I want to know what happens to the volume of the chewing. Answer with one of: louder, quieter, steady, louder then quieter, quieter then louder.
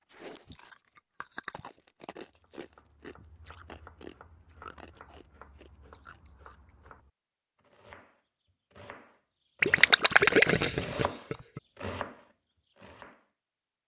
quieter.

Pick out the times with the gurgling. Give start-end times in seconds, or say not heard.
9.6-11.6.